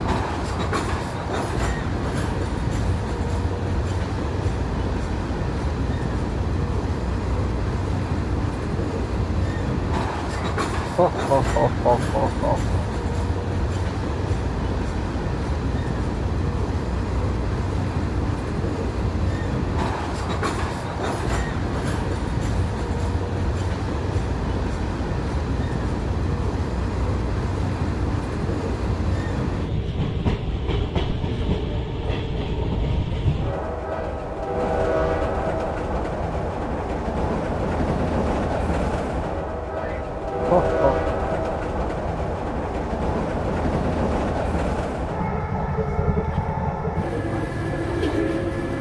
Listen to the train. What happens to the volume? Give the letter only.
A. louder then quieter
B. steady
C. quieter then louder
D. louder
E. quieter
B.